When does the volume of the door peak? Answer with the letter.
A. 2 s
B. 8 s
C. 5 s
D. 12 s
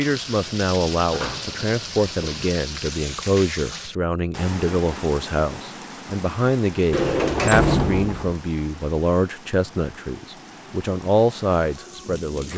B.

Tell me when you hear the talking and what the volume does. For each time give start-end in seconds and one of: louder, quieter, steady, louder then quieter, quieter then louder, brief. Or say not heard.
0.0-12.5 steady.